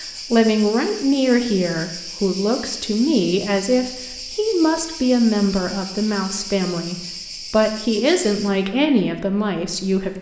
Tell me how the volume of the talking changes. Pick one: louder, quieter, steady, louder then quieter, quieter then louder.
steady.